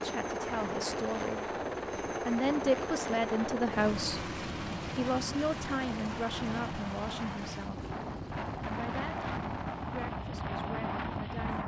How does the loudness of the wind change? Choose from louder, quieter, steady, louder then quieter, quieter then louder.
louder.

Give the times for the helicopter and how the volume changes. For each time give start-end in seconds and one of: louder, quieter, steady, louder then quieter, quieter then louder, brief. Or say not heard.
0.0-11.6 quieter.